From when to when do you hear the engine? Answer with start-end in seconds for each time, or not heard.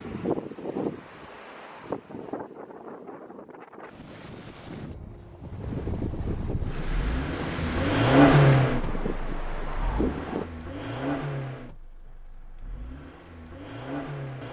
5.5-14.4.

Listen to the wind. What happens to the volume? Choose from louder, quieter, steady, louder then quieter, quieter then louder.
quieter then louder.